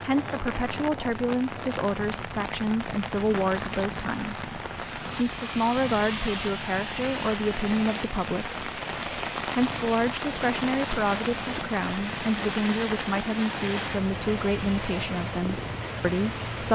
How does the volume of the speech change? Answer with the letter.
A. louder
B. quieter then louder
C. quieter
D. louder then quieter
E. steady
E.